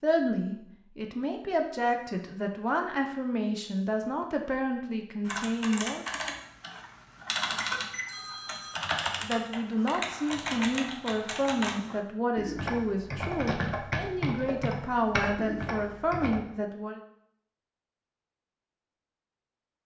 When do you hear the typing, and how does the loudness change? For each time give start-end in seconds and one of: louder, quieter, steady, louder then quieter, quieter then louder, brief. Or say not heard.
5.2-16.4 steady.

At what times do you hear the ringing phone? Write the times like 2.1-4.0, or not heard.
8.1-8.8.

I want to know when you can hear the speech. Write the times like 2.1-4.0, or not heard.
0.0-6.0, 9.2-17.0.